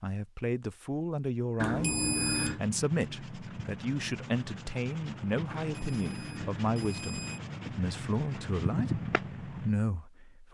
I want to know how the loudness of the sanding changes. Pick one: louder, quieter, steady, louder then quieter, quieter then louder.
louder.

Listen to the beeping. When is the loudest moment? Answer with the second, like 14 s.
2 s.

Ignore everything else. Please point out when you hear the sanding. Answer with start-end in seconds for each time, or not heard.
2.3-9.7.